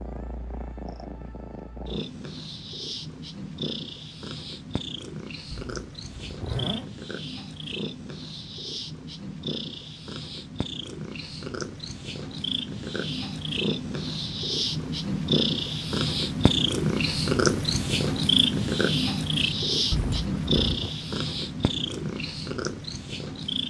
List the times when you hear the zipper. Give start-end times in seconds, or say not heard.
5.5-6.9, 19.9-20.9.